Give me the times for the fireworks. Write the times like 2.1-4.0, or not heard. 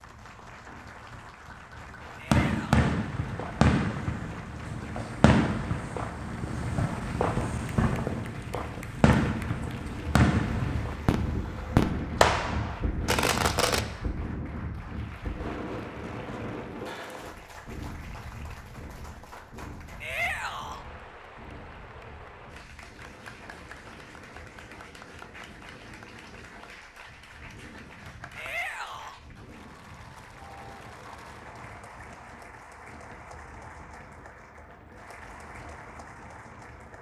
2.0-13.8.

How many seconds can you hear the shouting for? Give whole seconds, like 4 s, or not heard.
2 s.